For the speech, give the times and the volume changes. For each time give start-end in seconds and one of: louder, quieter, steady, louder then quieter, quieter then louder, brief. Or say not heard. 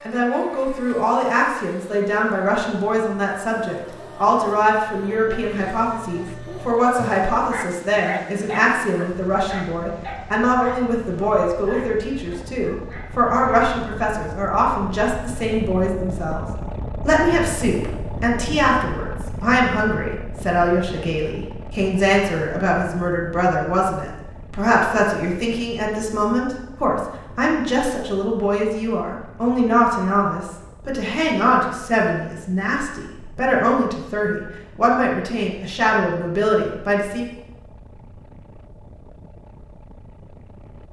0.1-16.4 steady
17.1-37.2 steady.